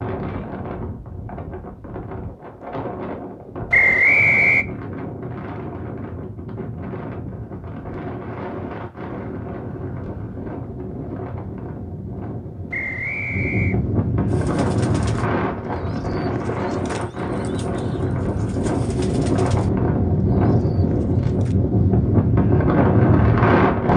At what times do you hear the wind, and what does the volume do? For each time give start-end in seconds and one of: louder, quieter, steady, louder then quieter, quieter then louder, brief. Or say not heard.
0.0-23.9 louder.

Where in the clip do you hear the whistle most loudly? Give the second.
4 s.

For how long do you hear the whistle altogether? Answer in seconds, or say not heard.
2 s.